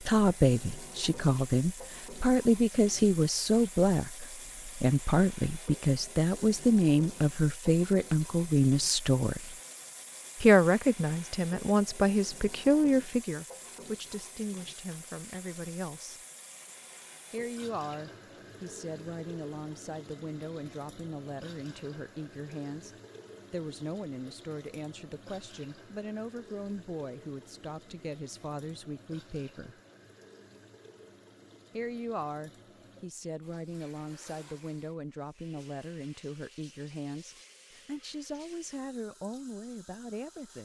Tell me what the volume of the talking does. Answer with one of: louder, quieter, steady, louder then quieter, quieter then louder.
quieter.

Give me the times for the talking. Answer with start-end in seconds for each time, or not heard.
0.0-9.6, 10.4-16.2, 17.3-22.9, 23.5-29.8, 31.7-40.6.